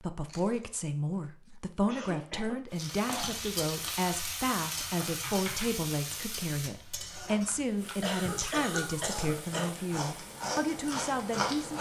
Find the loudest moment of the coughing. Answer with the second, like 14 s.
9 s.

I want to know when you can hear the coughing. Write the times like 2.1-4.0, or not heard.
1.9-2.6, 7.5-9.7.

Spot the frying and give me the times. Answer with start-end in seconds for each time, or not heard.
2.7-11.4.